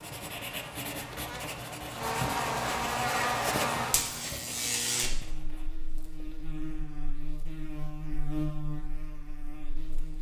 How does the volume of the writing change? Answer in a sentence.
The loudness of the writing goes down.